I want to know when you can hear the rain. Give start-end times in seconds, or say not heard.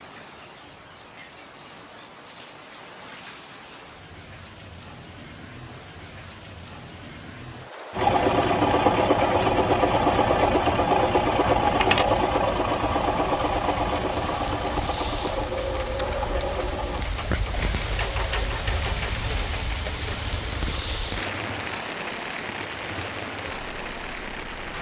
0.0-24.7.